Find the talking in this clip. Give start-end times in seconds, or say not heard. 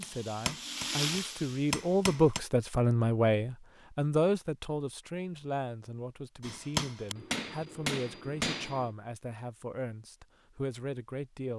0.0-11.5.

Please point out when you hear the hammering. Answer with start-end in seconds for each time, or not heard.
0.0-2.4, 6.4-8.9.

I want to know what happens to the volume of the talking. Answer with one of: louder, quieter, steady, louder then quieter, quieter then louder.
quieter.